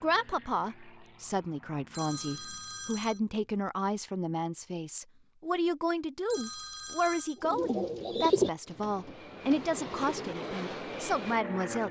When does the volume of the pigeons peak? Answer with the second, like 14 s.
8 s.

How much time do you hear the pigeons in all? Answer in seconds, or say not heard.
3 s.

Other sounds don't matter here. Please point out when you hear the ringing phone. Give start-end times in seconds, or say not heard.
1.9-3.2, 6.2-7.4.